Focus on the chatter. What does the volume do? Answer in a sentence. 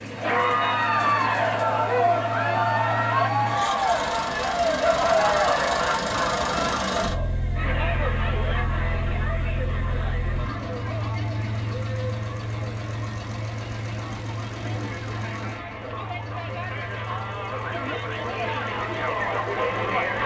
The loudness of the chatter goes down, then up.